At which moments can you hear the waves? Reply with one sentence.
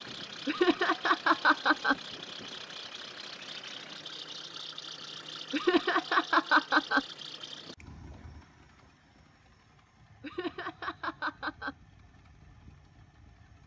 You can't hear the waves here.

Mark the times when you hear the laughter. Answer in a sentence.
The laughter can be heard from 0.5 to 1.9 s, from 5.5 to 7.0 s and from 10.2 to 11.8 s.